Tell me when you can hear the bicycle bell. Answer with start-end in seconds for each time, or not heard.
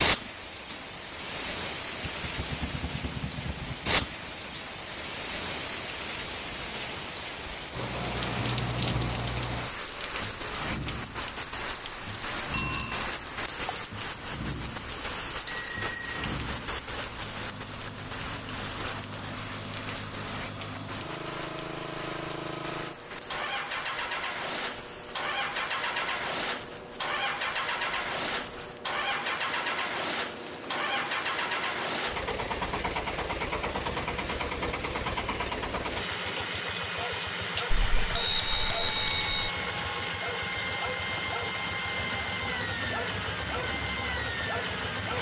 12.5-13.1, 15.4-16.2, 37.7-39.3.